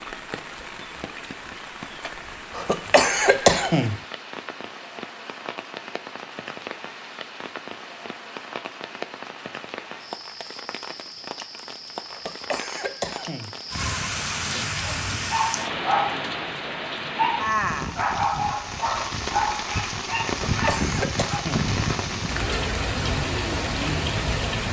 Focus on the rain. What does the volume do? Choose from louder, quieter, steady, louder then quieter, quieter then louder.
louder.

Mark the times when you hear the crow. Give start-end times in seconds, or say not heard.
not heard.